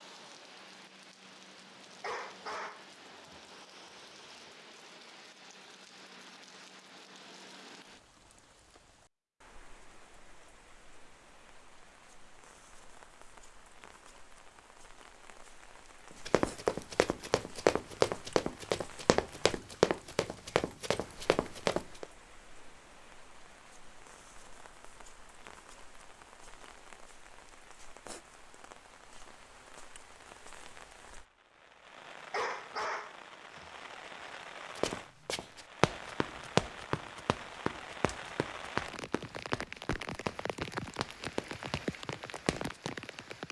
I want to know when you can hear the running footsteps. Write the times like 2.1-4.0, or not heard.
16.2-22.1, 34.8-43.0.